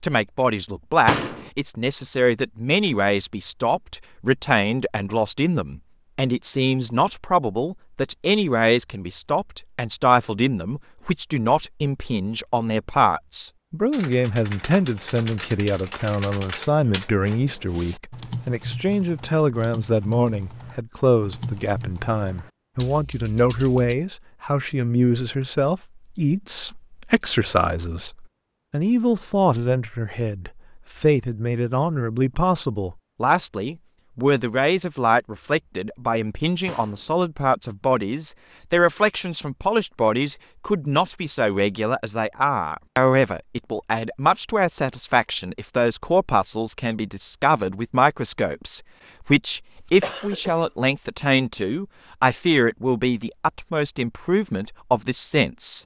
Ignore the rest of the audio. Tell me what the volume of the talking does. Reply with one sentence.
The loudness of the talking stays about the same.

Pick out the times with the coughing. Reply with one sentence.
The coughing can be heard from 49.8 to 50.7 s.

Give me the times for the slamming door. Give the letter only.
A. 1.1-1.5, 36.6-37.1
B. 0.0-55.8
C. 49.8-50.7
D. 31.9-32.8
A.